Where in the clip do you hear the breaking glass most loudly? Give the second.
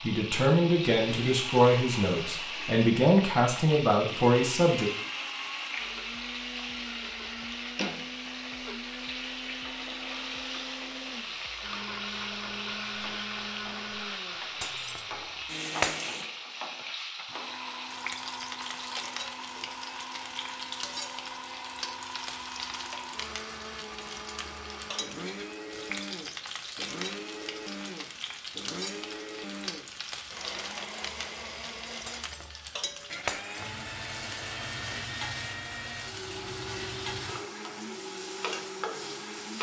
16 s.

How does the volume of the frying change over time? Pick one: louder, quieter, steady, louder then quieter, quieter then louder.
steady.